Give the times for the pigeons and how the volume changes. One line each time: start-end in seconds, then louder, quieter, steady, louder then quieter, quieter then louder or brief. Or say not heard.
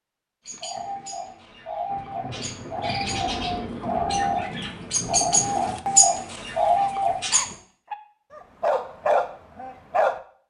0.5-7.5 louder.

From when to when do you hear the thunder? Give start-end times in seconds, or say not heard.
1.9-6.0.